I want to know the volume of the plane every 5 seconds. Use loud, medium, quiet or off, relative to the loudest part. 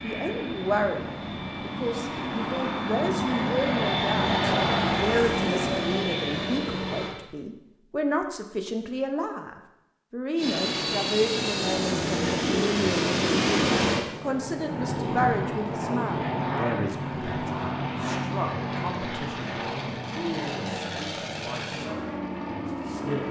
loud, loud, loud, loud, medium.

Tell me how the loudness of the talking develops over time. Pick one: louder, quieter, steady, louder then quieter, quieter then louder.
quieter.